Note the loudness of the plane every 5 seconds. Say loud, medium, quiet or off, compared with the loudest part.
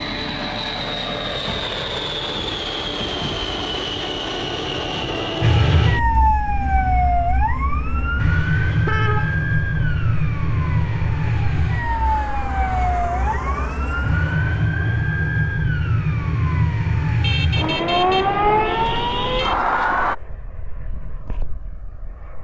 loud, medium, medium, quiet, quiet.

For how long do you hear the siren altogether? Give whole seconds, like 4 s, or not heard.
15 s.